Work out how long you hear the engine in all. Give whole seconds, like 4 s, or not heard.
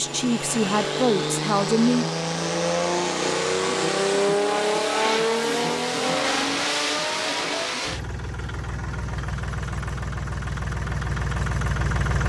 12 s.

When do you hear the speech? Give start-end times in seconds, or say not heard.
0.0-2.0.